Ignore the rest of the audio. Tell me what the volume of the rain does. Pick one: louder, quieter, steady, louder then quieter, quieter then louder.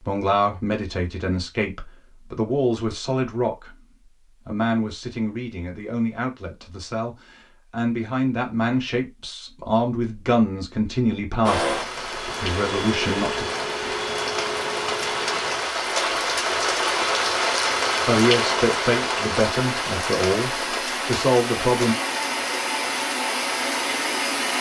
louder then quieter.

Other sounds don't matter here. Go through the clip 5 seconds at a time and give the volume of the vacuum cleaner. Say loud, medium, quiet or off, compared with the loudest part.
off, off, loud, medium, loud.